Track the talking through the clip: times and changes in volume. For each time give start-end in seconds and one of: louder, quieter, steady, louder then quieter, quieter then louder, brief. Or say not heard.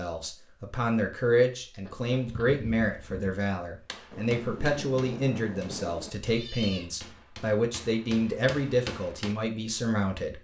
0.0-10.3 steady.